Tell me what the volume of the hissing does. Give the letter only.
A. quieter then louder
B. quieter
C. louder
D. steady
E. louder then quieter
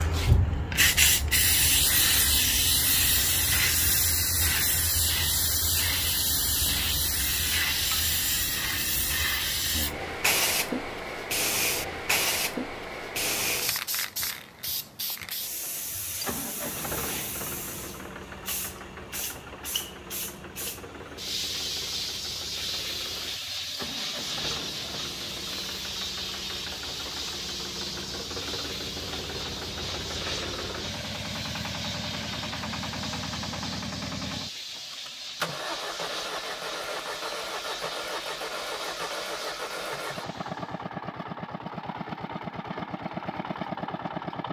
B.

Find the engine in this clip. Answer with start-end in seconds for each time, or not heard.
15.8-44.4.